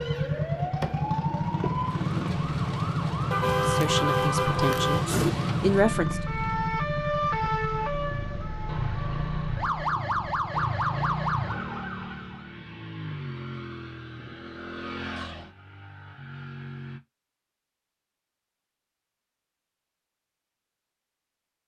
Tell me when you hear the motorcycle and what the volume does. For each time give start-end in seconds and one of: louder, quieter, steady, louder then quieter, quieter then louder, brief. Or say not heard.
0.0-17.0 quieter.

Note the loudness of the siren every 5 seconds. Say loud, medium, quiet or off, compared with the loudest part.
loud, loud, loud, off, off.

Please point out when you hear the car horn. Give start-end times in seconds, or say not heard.
3.3-5.3.